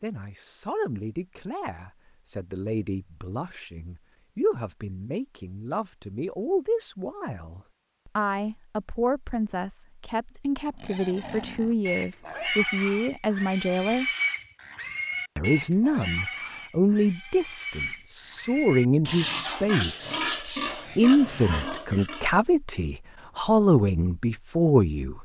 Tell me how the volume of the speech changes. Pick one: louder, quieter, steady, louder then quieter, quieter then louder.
louder.